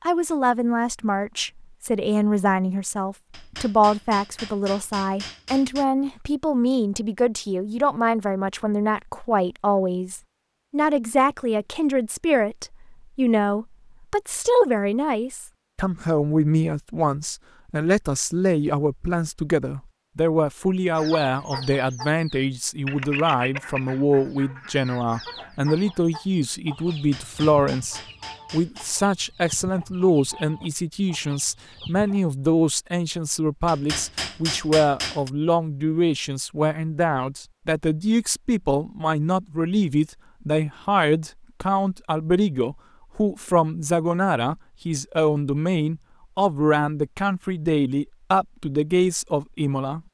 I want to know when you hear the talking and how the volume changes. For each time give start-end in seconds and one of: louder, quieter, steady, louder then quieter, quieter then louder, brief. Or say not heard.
0.0-50.0 steady.